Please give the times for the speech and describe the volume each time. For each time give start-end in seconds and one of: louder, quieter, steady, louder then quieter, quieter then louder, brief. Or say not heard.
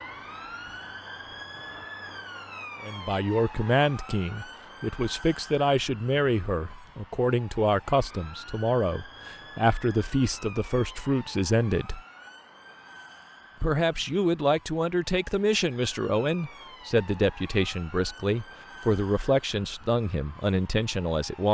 2.8-12.0 steady
13.6-21.4 steady.